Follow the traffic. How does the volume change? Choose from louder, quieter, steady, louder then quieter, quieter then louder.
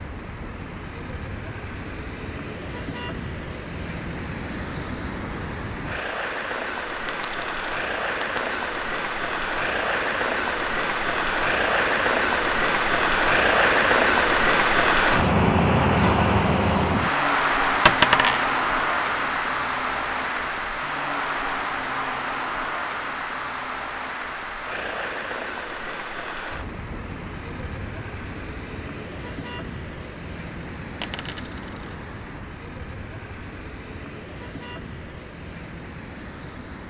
louder then quieter.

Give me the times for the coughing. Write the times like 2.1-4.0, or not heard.
not heard.